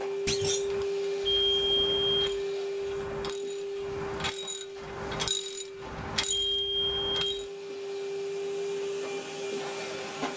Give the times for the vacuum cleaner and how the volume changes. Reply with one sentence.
You can hear the vacuum cleaner from 0.0 to 10.3 s, getting quieter then louder.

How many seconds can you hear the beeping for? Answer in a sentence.
The beeping can be heard for 2 seconds in total.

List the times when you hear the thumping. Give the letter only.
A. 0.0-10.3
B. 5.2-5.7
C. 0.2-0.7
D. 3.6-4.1
C.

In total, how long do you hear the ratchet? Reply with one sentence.
You can hear the ratchet for 7 seconds altogether.